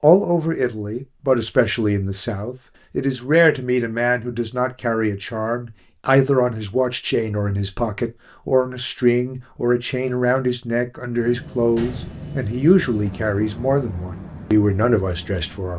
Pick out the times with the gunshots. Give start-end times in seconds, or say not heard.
11.8-12.3.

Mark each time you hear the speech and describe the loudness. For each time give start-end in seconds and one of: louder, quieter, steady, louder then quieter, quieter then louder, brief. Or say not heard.
0.0-15.7 steady.